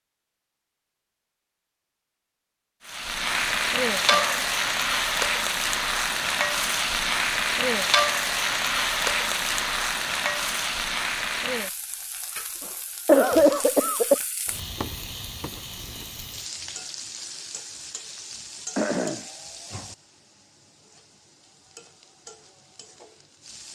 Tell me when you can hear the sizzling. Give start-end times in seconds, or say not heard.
2.9-23.6.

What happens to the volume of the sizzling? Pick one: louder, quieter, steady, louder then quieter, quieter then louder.
quieter.